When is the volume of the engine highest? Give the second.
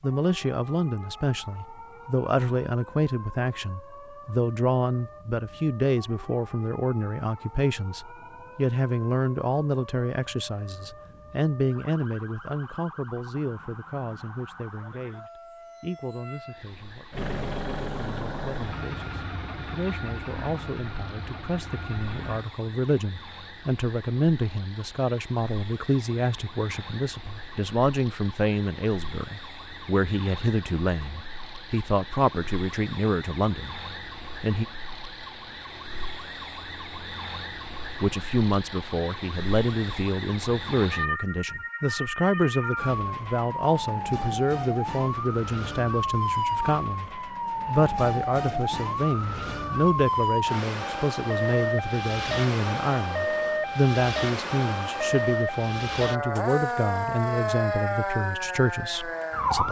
18 s.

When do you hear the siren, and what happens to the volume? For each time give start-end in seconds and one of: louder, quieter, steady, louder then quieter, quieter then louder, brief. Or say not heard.
0.0-59.6 louder.